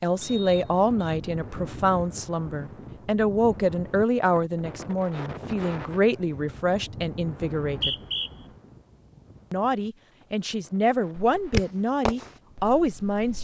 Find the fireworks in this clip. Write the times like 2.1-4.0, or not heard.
11.3-13.4.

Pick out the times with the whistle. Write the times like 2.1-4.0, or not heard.
0.2-1.1, 7.5-8.3.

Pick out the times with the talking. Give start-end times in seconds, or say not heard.
0.0-8.0, 9.5-13.4.